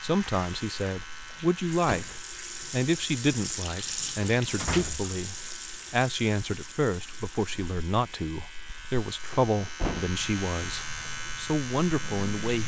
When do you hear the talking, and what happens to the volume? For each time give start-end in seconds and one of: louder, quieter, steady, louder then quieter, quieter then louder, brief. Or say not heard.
0.0-12.6 steady.